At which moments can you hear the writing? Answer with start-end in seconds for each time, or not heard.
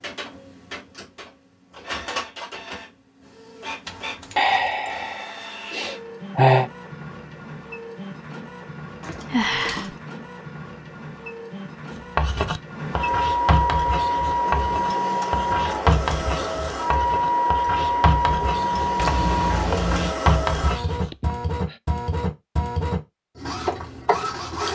12.2-21.3.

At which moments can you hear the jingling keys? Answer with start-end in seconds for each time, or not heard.
3.9-5.2, 9.0-9.9, 18.9-20.1.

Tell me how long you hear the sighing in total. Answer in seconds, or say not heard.
4 s.